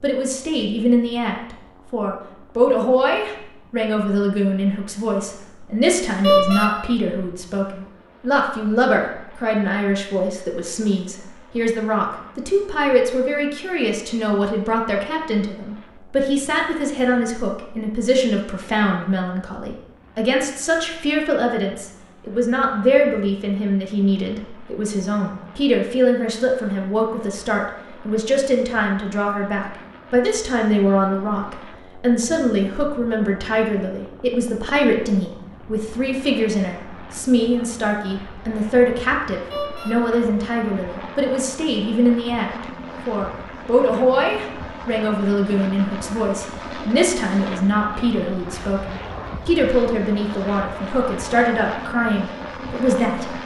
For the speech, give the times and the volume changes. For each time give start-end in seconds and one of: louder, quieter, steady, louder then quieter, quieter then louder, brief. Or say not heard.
0.0-53.4 steady.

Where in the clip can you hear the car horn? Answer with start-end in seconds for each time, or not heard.
6.2-6.7, 39.5-40.0.